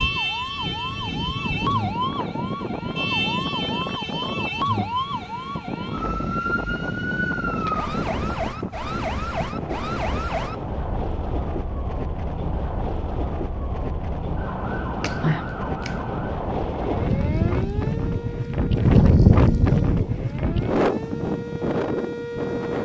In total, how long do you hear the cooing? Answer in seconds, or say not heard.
not heard.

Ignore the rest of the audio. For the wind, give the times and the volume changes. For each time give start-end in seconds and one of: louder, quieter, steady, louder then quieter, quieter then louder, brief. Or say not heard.
0.0-22.8 louder.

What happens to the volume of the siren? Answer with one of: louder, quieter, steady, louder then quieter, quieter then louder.
quieter.